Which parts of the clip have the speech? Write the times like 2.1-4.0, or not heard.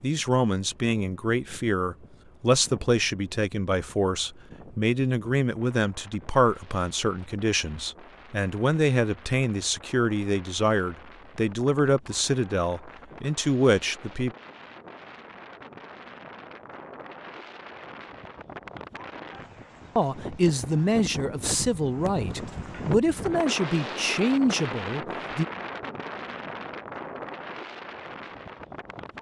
0.0-14.3, 19.9-25.4.